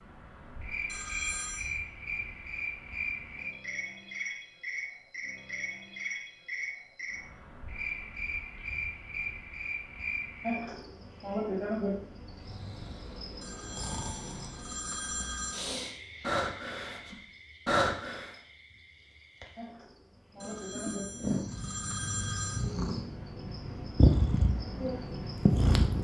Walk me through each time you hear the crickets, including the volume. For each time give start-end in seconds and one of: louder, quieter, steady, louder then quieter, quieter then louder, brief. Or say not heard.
0.0-25.9 quieter then louder.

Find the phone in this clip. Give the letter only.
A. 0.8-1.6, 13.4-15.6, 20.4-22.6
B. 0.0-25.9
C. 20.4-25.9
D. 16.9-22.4
A.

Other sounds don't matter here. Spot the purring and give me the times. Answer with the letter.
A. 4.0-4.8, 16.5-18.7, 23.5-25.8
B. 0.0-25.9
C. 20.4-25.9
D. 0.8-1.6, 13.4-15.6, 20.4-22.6
C.